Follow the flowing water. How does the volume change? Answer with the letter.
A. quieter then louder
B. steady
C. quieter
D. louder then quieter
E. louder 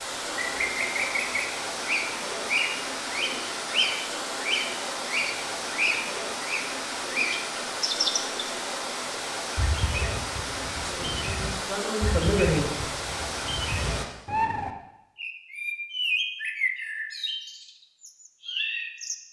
B.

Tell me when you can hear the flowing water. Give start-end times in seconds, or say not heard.
0.0-14.1.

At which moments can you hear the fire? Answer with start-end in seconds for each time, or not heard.
not heard.